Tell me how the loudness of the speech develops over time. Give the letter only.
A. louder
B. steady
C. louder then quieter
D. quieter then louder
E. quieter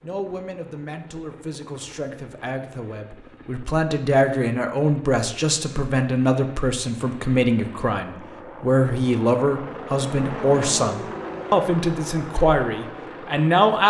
A.